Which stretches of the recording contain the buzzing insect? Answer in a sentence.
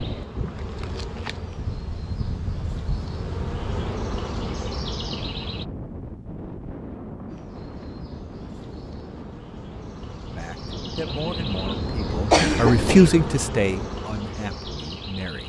The buzzing insect can be heard from 0.0 to 5.7 s and from 7.2 to 15.4 s.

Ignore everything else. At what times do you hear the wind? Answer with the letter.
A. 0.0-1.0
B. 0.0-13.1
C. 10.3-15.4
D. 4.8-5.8
B.